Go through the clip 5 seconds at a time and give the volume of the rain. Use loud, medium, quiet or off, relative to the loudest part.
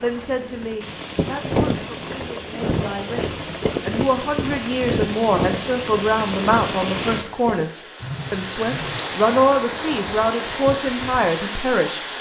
medium, loud, loud.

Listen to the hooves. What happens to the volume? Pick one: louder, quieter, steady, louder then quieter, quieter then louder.
quieter.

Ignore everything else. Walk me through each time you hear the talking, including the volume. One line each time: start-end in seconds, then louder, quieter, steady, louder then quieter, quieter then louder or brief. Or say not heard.
0.0-12.0 louder.